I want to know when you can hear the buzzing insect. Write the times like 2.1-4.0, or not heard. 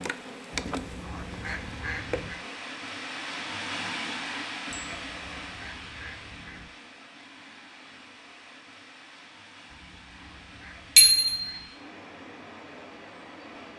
0.0-2.5.